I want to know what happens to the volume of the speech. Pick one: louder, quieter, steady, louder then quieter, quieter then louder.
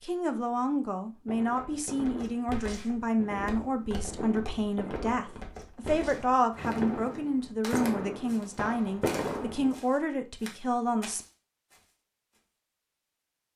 steady.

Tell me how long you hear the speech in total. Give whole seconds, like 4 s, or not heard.
11 s.